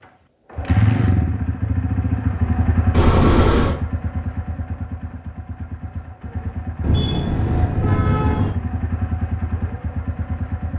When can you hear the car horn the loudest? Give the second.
3 s.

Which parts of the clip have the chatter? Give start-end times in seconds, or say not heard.
not heard.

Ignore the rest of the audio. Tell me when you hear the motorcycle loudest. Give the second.
1 s.